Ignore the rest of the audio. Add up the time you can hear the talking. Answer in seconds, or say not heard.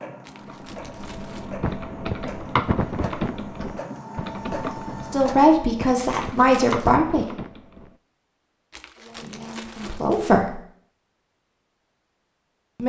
4 s.